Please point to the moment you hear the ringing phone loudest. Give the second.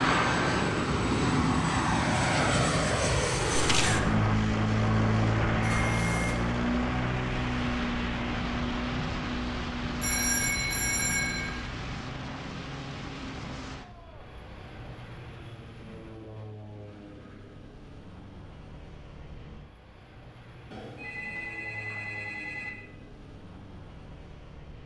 10 s.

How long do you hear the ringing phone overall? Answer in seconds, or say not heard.
4 s.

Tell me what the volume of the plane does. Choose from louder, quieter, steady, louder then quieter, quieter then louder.
quieter.